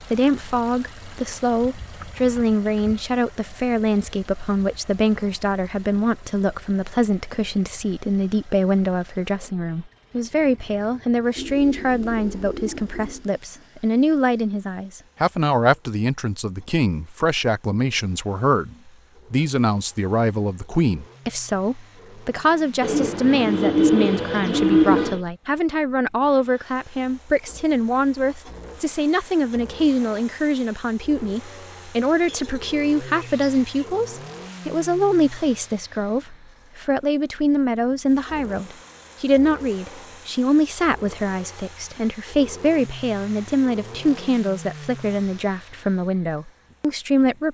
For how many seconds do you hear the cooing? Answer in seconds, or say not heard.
6 s.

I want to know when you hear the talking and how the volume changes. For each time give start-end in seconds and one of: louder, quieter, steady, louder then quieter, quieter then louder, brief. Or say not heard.
0.1-47.5 steady.